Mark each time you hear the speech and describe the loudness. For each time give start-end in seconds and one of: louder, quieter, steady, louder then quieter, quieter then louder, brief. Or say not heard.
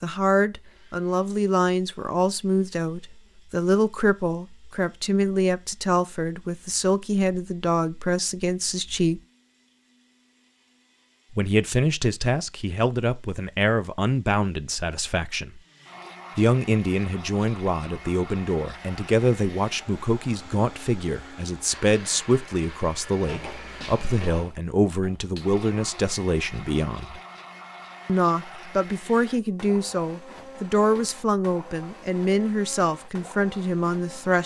0.0-9.2 steady
11.3-15.6 quieter
16.4-27.2 steady
28.1-34.4 steady.